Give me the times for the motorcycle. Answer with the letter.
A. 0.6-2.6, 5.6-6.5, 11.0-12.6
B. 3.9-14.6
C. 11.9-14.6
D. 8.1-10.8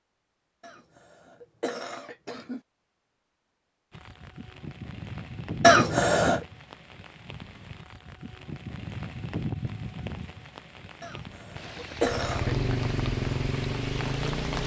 C.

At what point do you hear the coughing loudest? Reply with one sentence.
The volume of the coughing peaks at 6 seconds.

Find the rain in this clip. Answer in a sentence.
The rain can be heard from 3.9 to 14.6 s.